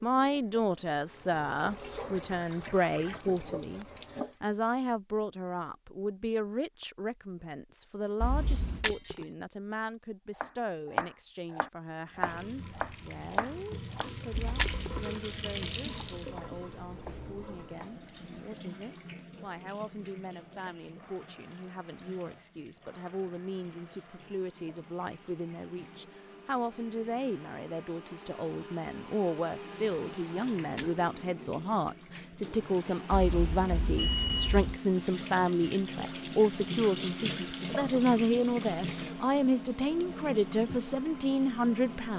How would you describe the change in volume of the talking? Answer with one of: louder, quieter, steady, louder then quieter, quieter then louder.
quieter then louder.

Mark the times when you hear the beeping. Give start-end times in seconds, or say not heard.
8.2-8.8, 14.6-15.1, 33.1-34.8.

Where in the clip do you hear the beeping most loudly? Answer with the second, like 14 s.
34 s.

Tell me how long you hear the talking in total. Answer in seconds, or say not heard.
42 s.